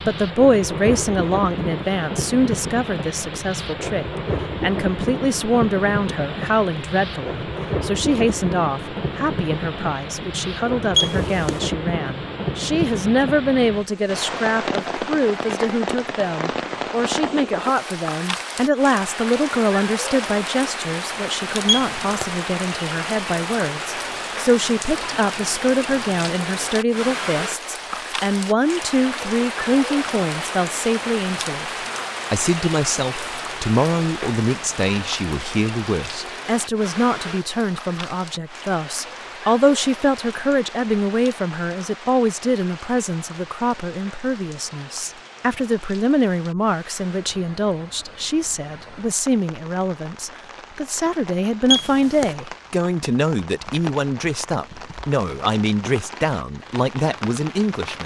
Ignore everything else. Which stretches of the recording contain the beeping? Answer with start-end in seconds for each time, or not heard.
10.9-11.6, 21.6-22.3, 51.7-52.4.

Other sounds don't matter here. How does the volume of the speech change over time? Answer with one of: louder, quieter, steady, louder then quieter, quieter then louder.
steady.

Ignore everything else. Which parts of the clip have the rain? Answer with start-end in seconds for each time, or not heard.
0.0-58.0.